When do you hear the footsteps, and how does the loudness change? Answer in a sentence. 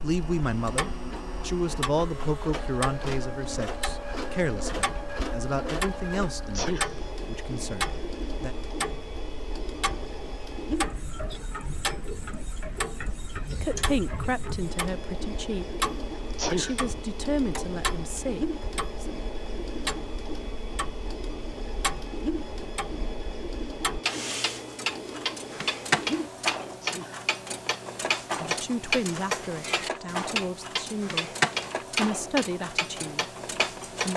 The footsteps can't be heard in this clip.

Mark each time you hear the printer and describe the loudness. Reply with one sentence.
The printer can be heard from 0.0 to 34.1 s, at a steady volume.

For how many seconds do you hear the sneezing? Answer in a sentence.
You can hear the sneezing for 2 seconds altogether.